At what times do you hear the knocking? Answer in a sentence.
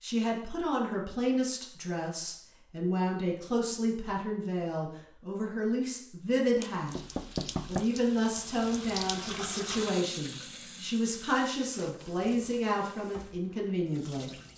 The knocking can be heard from 6.6 to 7.8 s.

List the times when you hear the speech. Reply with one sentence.
The speech can be heard from 0.0 to 7.0 s and from 7.7 to 14.3 s.